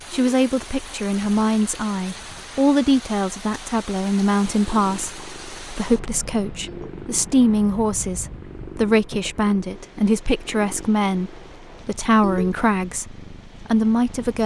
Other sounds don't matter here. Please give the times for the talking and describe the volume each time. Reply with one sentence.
You can hear the talking from 0.1 to 14.4 s, at a steady volume.